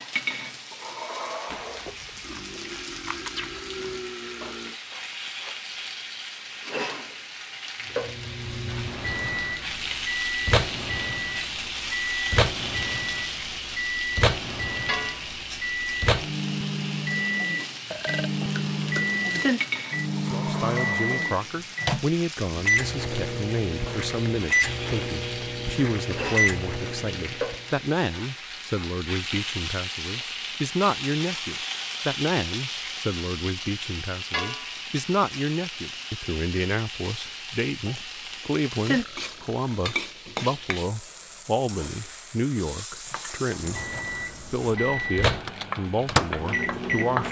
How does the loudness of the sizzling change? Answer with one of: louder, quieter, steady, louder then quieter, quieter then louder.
steady.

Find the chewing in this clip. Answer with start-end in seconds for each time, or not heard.
1.4-4.0.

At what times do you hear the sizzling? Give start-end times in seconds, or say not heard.
0.0-47.2.